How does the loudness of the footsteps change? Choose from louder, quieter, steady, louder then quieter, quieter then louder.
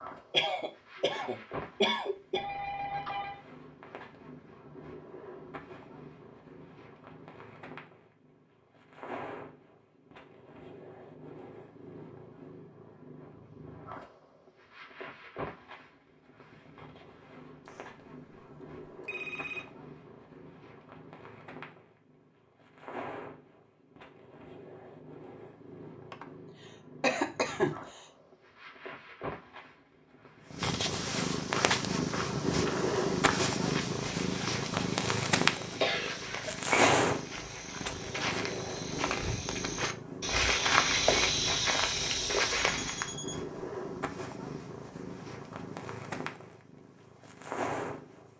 louder.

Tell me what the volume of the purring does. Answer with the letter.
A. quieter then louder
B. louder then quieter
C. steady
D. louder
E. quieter
B.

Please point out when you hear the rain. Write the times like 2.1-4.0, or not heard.
not heard.